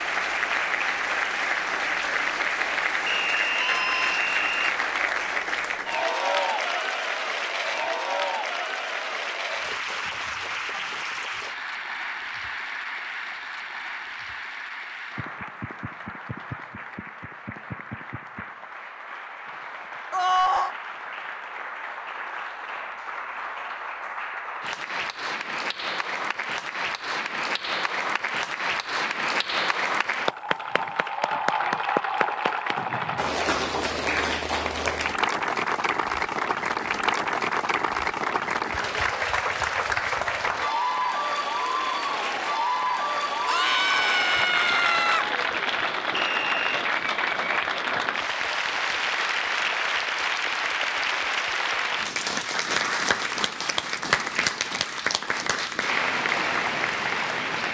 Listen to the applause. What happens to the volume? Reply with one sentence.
The loudness of the applause goes down, then up.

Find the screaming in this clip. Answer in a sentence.
The screaming can be heard from 3.5 to 4.2 s, from 20.1 to 20.8 s and from 43.5 to 45.2 s.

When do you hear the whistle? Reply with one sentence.
The whistle can be heard from 3.0 to 4.8 s and from 46.1 to 46.9 s.